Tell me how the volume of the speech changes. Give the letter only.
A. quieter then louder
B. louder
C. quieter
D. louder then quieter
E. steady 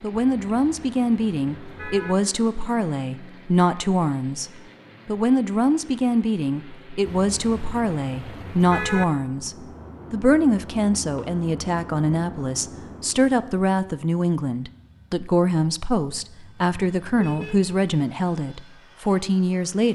E.